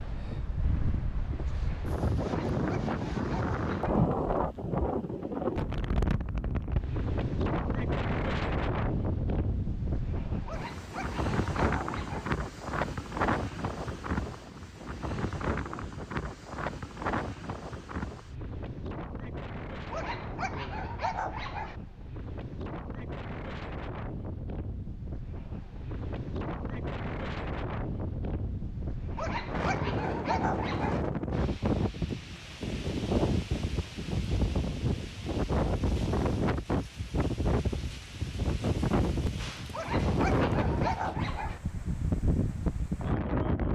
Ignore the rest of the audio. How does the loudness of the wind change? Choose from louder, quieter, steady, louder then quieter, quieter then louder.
quieter then louder.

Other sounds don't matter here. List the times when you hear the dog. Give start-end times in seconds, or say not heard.
2.2-4.0, 10.4-12.3, 19.9-21.8, 29.1-31.1, 39.7-41.6.